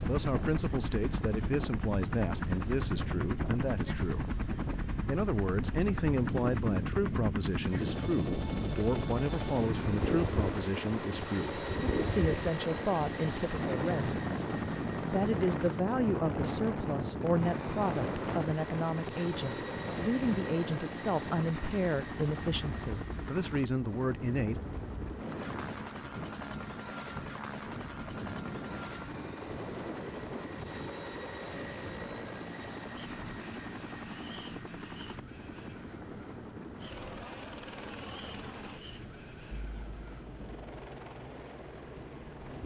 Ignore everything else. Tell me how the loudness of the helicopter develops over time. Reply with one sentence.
The loudness of the helicopter goes down.